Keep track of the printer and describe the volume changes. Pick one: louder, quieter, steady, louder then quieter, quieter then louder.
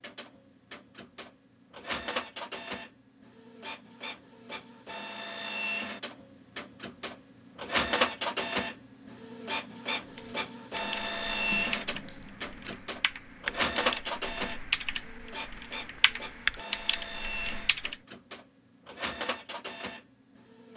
louder then quieter.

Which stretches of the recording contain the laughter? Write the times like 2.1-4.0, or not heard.
not heard.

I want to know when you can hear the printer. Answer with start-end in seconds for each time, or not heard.
0.0-20.7.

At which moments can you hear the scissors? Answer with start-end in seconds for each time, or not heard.
11.5-12.8.